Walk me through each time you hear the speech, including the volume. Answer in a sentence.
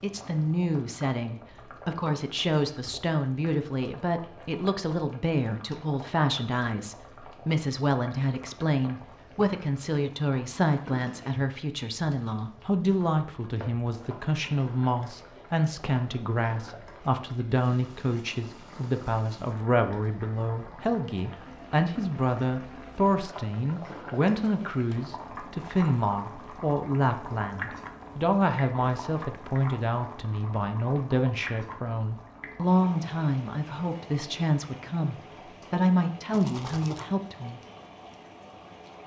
The speech can be heard from 0.0 to 37.6 s, at a steady volume.